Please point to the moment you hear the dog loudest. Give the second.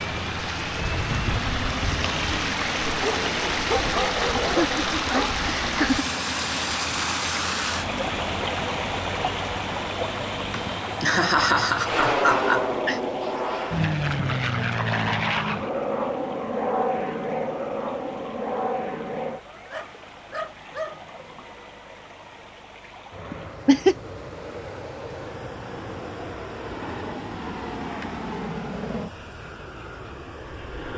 4 s.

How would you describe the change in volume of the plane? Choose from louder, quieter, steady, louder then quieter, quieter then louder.
louder then quieter.